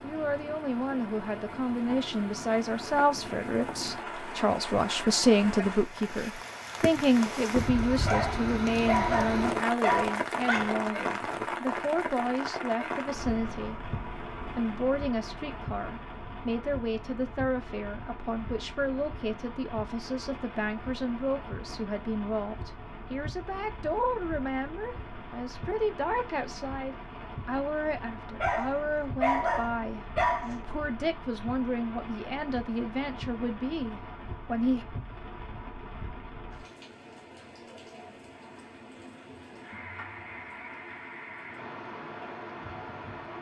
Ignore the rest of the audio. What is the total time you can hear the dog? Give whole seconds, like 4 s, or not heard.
5 s.